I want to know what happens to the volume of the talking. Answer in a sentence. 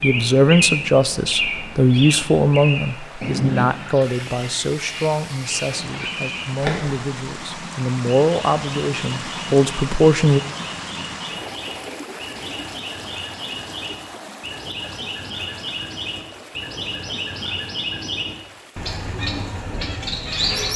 The loudness of the talking goes down, then up.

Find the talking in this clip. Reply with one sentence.
You can hear the talking from 0.0 to 10.4 s.